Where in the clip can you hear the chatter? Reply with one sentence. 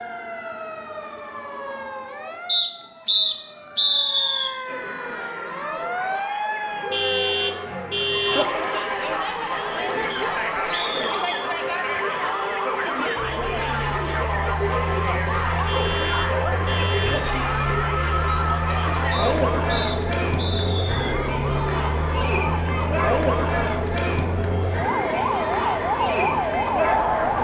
The chatter can be heard from 4.7 to 27.4 s.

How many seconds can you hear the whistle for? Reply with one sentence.
You can hear the whistle for 5 seconds altogether.